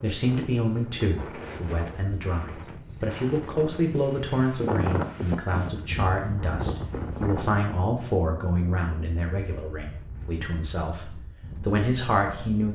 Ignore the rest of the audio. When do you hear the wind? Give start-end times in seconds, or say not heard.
0.1-12.6.